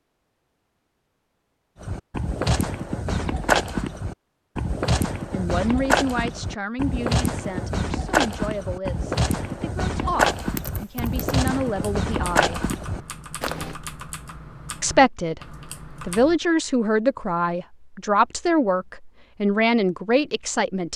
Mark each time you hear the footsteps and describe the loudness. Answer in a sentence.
The footsteps can be heard from 1.8 to 13.8 s, at a steady volume.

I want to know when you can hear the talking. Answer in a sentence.
The talking can be heard from 5.3 to 12.6 s and from 14.8 to 20.9 s.